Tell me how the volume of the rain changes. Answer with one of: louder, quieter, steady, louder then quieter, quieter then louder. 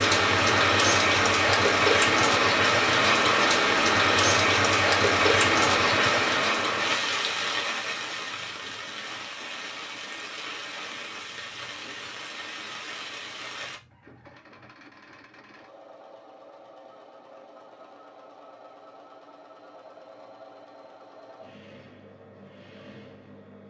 quieter.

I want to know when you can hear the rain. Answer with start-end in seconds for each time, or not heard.
0.0-13.8.